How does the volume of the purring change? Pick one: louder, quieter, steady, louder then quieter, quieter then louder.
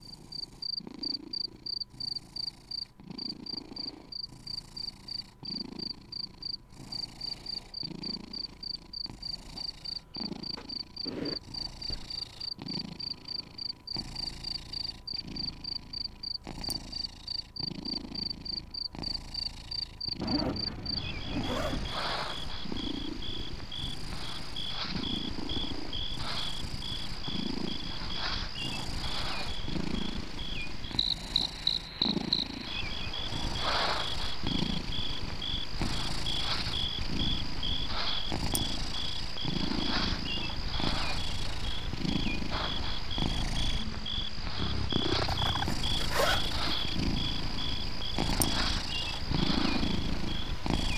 louder.